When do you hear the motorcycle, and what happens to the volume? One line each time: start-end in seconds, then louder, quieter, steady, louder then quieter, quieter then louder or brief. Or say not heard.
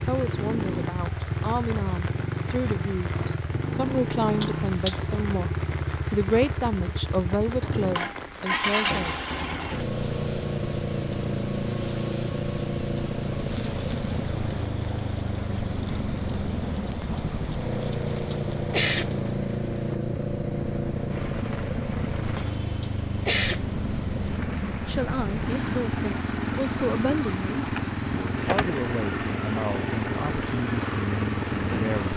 0.0-32.1 steady.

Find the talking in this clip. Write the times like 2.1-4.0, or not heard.
0.1-9.2, 24.9-32.1.